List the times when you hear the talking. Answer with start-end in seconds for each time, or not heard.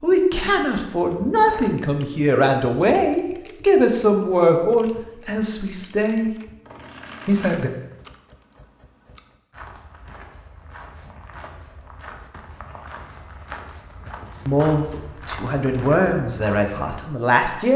0.0-6.3, 7.2-7.7, 14.4-17.7.